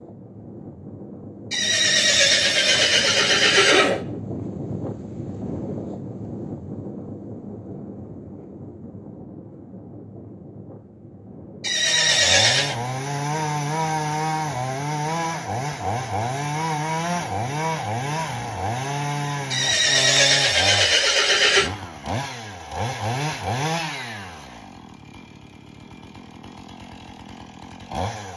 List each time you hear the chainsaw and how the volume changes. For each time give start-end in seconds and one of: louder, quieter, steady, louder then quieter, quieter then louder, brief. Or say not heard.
11.8-28.3 quieter.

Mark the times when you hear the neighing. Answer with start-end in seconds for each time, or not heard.
1.5-4.0, 11.6-12.8, 19.5-21.7.